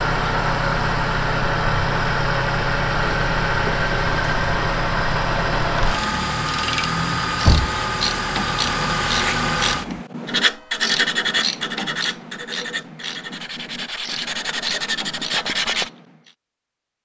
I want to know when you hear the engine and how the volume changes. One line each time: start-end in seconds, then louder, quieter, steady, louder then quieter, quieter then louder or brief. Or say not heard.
0.0-10.0 steady.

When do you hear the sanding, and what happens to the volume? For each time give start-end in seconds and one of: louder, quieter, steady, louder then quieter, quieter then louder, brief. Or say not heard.
10.2-15.9 quieter then louder.